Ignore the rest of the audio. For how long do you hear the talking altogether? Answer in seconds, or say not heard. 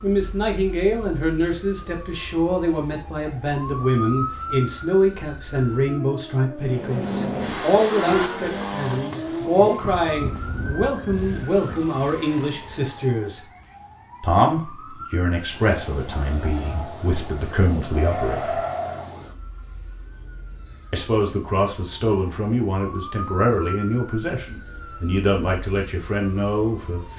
24 s.